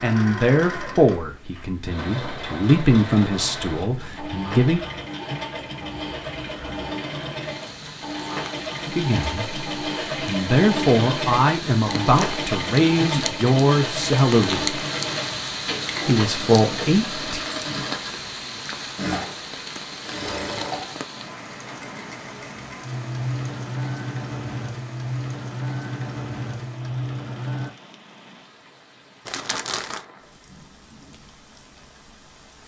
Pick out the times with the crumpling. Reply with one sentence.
You can hear the crumpling from 29.2 to 30.1 s.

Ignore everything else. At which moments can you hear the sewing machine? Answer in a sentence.
You can hear the sewing machine from 0.0 to 27.7 s.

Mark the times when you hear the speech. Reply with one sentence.
The speech can be heard from 0.0 to 4.8 s, from 8.8 to 14.8 s and from 16.1 to 17.4 s.